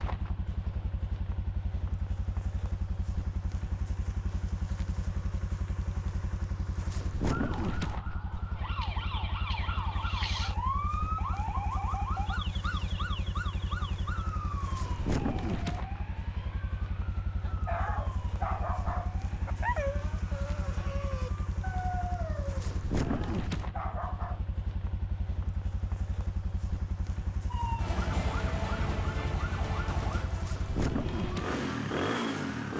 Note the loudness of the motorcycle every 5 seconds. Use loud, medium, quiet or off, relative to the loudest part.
medium, medium, medium, medium, medium, medium, loud.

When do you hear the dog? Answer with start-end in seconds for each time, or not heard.
17.1-24.4.